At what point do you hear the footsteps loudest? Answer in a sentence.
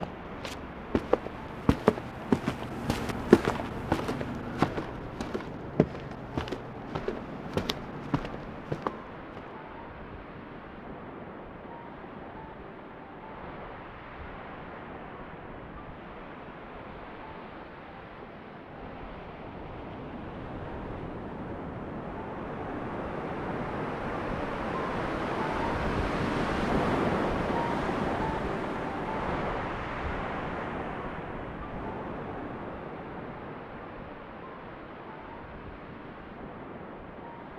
The volume of the footsteps peaks at 3 seconds.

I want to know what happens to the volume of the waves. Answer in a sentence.
The volume of the waves goes up, then down.